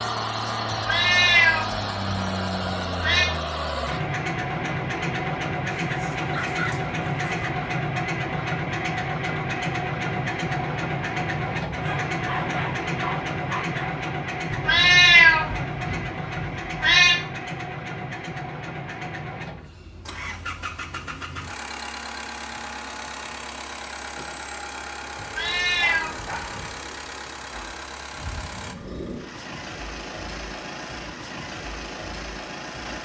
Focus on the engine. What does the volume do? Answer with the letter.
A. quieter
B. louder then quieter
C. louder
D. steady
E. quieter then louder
A.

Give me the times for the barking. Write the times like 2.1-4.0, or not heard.
5.8-7.5, 11.7-13.9, 25.4-26.7.